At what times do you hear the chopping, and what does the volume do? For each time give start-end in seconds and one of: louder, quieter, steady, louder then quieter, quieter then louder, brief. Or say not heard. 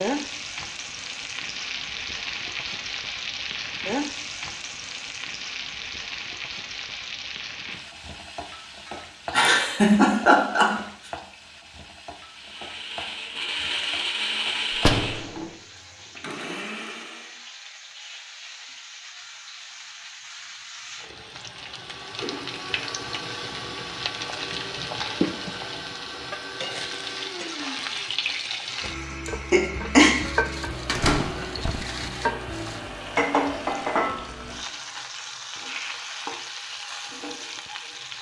not heard.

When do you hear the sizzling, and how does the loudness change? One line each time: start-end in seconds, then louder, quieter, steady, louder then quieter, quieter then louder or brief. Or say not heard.
0.0-38.1 quieter then louder.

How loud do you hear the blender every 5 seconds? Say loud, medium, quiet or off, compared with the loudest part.
off, off, loud, medium, medium, medium, medium, off.